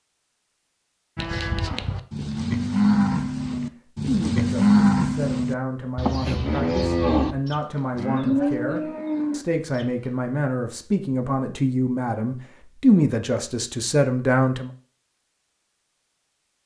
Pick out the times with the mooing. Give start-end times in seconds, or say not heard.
1.1-9.8.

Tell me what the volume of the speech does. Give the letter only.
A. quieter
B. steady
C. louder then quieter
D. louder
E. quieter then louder
D.